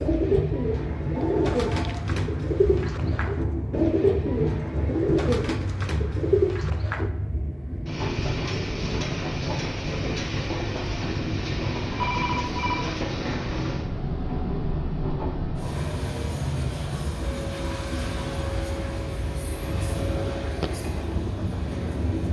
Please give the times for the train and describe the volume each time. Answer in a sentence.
The train can be heard from 0.0 to 22.2 s, at a steady volume.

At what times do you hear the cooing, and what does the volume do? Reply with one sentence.
The cooing can be heard from 0.0 to 7.1 s, at a steady volume.